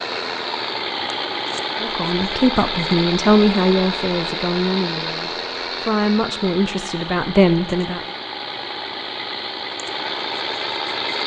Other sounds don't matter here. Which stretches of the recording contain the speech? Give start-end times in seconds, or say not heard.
1.8-8.0.